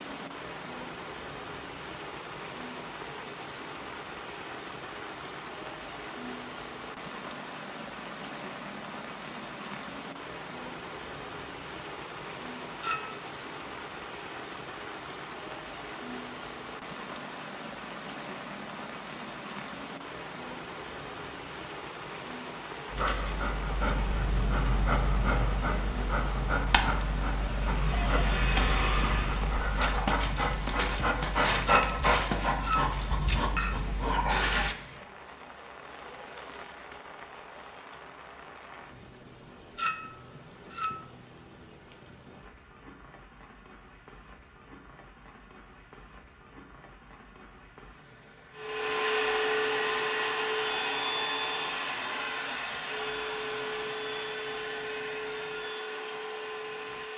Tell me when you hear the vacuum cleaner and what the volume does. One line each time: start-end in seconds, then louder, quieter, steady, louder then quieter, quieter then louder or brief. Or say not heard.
27.6-29.5 brief
48.5-57.1 quieter.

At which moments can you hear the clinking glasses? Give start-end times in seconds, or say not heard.
12.8-13.2, 31.6-33.9, 39.8-41.0.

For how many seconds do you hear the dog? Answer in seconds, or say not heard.
12 s.